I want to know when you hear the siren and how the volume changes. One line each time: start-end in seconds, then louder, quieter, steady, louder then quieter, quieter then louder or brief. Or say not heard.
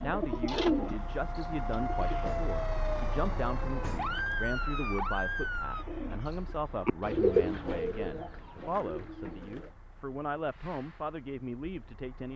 0.1-5.8 louder.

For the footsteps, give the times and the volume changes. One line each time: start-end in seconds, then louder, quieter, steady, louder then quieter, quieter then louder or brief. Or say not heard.
not heard.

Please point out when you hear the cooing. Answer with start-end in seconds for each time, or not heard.
0.0-2.4, 5.7-9.8.